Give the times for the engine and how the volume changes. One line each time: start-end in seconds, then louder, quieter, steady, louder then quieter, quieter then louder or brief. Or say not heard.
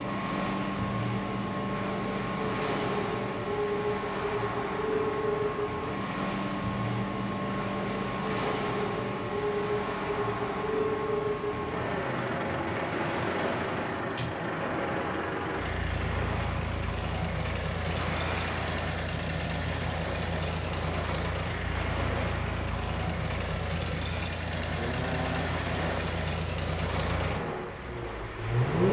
0.0-28.8 steady.